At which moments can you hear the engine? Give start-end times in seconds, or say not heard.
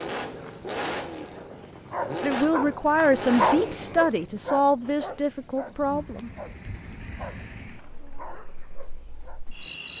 0.0-4.0.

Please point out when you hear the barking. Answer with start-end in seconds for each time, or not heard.
0.2-9.4.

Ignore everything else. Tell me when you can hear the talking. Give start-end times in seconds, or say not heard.
2.2-6.3.